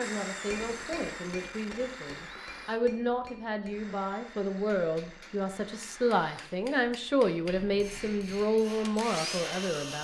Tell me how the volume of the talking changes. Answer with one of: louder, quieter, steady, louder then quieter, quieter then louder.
louder.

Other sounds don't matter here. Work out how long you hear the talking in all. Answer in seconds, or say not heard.
10 s.